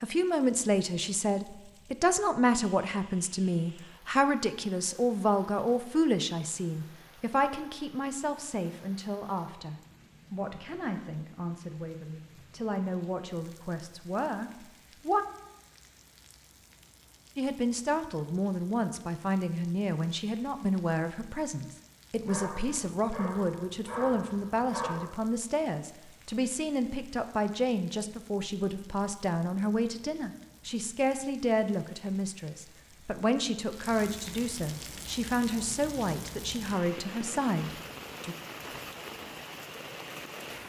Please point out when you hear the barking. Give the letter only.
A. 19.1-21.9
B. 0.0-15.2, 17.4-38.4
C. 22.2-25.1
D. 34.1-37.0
C.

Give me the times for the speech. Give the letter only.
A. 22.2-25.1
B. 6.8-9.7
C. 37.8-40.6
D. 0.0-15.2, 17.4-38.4
D.